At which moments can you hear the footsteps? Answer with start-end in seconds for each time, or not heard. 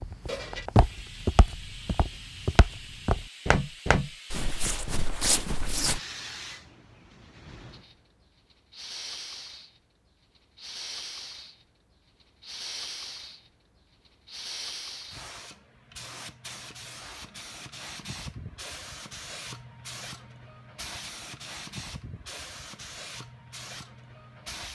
0.0-6.0.